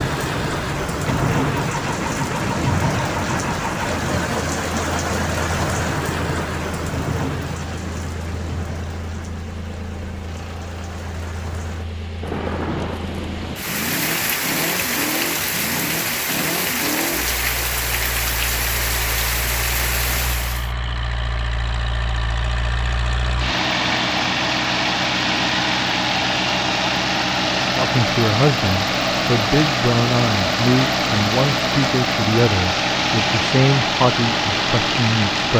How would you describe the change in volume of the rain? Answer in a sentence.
The volume of the rain goes down, then up.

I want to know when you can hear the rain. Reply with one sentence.
The rain can be heard from 0.0 to 20.7 s.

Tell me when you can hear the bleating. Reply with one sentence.
The bleating can't be heard in this clip.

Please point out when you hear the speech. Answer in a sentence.
You can hear the speech from 27.8 to 35.5 s.